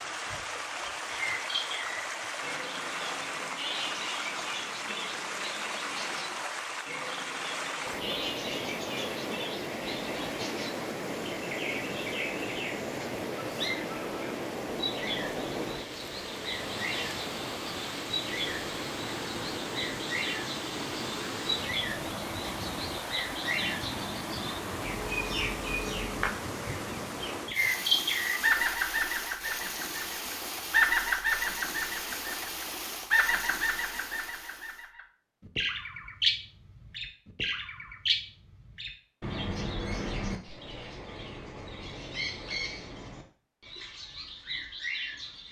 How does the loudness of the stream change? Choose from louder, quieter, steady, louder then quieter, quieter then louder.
steady.